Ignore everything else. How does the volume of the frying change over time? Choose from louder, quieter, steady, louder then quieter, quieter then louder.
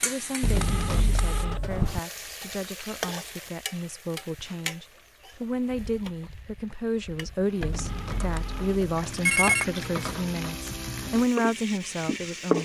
quieter then louder.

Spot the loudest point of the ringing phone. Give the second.
9 s.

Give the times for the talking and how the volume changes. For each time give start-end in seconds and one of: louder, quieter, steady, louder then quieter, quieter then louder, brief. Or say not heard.
0.0-12.5 louder.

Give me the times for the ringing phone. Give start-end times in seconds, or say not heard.
0.4-1.8, 7.6-9.7.